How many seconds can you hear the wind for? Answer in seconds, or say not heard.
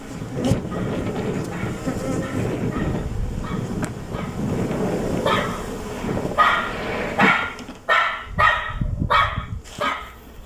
7 s.